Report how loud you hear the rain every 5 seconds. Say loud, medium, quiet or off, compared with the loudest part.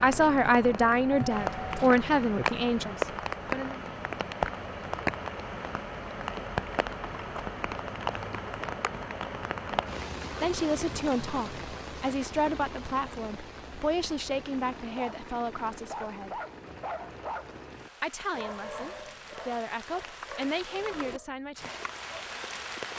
loud, loud, medium, quiet, medium.